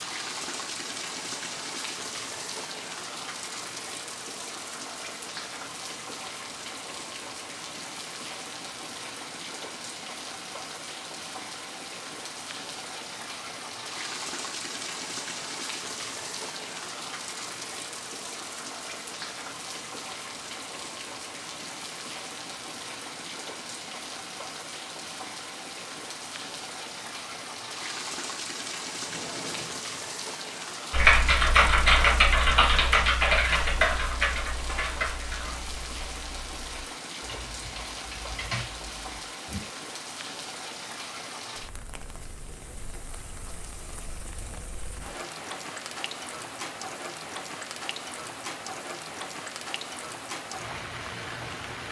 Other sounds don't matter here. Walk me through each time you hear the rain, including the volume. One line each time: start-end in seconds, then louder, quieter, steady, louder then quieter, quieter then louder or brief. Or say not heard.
0.0-51.8 steady.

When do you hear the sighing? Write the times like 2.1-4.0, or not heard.
29.1-30.1.